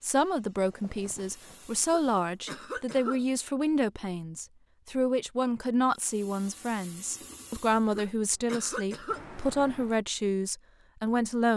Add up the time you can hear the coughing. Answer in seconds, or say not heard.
3 s.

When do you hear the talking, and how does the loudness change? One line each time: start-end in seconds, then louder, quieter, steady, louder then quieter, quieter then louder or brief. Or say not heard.
0.0-11.5 steady.